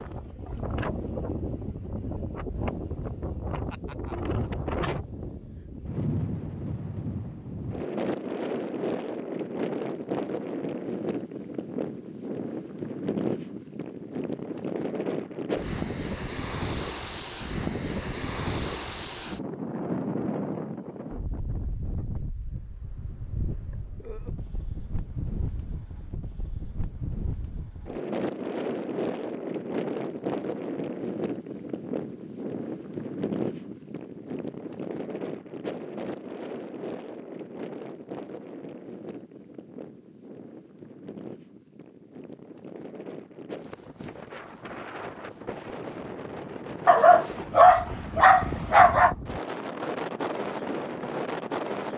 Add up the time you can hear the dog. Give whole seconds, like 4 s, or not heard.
2 s.